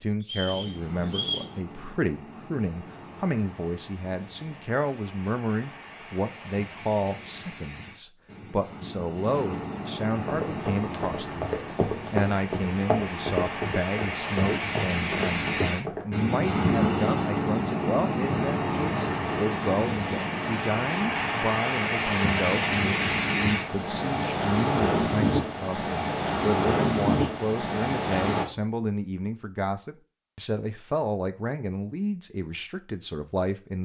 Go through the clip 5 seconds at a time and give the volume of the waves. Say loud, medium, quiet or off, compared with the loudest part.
quiet, quiet, medium, loud, loud, loud, off.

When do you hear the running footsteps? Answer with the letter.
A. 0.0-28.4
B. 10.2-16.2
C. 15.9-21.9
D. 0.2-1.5
B.